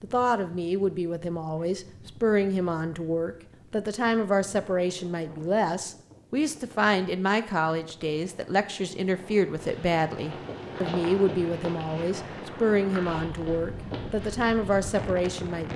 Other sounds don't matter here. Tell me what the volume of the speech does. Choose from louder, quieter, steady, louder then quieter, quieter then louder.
steady.